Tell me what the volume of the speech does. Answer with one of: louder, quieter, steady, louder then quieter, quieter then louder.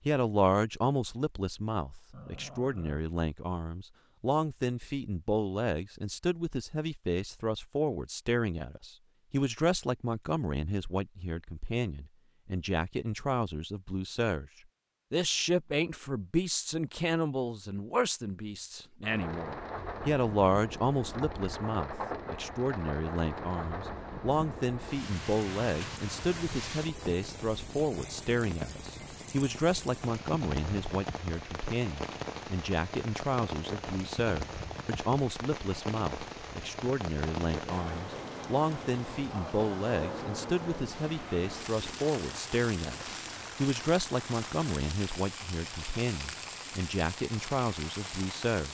steady.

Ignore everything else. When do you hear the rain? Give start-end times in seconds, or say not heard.
19.0-48.6.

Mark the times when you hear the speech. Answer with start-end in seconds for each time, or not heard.
0.1-14.5, 15.1-48.6.